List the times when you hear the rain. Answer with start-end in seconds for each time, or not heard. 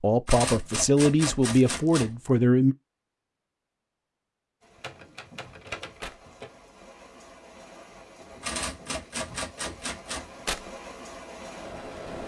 4.6-12.2.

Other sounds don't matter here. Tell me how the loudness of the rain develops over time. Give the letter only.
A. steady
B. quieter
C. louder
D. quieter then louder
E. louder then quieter
C.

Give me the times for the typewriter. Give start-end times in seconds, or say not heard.
0.2-2.1, 4.8-6.5, 8.4-10.3.